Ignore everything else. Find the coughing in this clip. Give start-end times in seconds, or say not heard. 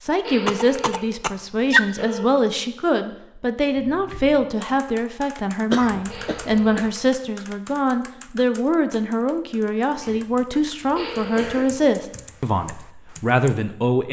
0.5-1.9, 5.7-6.9, 10.0-11.8.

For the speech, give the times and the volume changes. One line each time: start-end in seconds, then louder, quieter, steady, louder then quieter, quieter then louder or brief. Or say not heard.
0.0-14.0 steady.